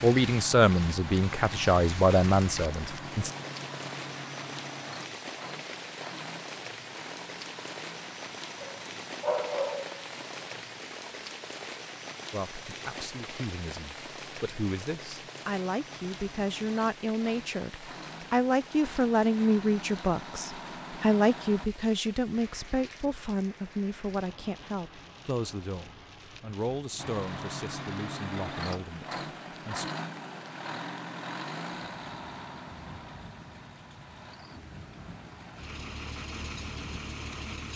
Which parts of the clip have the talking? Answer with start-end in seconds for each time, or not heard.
0.0-3.3, 12.3-29.9.